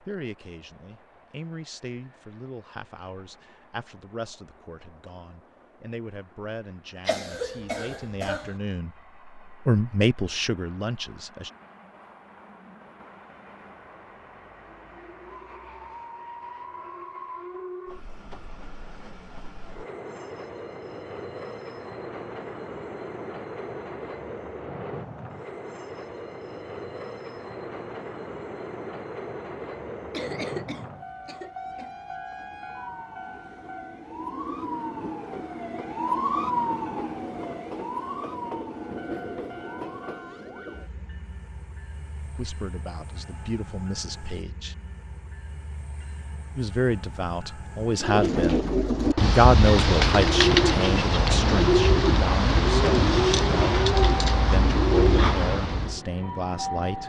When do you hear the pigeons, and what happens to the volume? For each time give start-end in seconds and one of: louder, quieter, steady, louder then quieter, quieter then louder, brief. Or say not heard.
48.0-56.0 steady.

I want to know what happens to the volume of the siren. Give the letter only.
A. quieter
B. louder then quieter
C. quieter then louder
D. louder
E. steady
B.